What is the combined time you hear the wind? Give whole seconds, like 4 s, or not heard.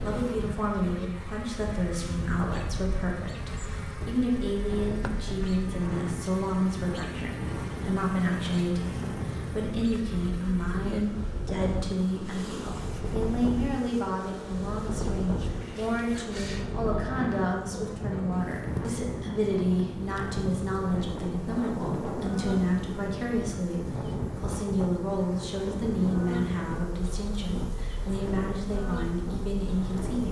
30 s.